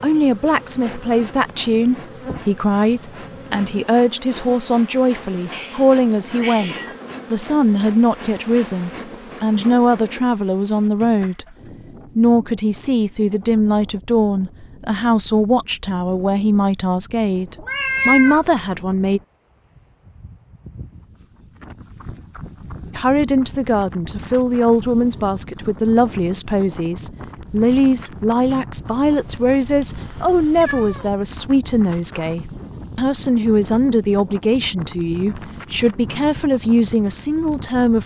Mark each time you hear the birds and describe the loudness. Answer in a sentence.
You can't hear the birds here.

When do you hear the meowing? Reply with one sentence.
The meowing can be heard from 5.5 to 7.0 s, from 17.6 to 18.4 s and from 29.0 to 31.1 s.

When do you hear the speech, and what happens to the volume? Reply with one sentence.
You can hear the speech from 0.0 to 11.4 s, at a steady volume; from 12.2 to 19.2 s, at a steady volume; and from 22.9 to 38.0 s, at a steady volume.